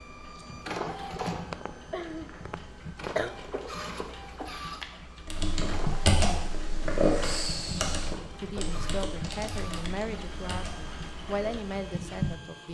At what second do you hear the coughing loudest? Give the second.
3 s.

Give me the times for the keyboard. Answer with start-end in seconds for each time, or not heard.
5.2-11.6.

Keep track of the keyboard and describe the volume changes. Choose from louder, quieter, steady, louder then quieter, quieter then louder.
quieter.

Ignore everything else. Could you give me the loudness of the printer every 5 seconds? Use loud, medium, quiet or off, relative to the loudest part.
loud, loud, medium.